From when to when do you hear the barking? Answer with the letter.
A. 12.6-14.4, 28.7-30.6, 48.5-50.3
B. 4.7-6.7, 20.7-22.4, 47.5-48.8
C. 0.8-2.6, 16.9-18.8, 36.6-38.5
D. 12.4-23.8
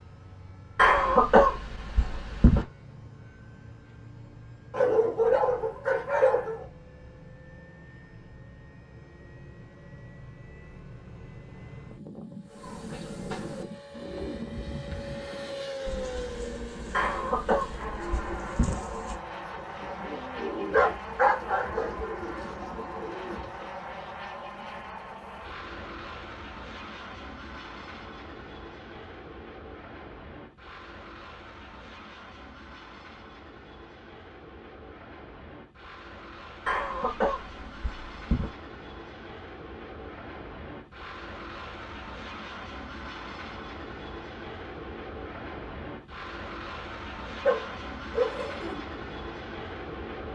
B.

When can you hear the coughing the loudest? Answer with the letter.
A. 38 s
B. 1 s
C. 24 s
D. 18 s
B.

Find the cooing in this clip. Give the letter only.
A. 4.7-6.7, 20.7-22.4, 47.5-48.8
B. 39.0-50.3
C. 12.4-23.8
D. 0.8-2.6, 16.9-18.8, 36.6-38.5
C.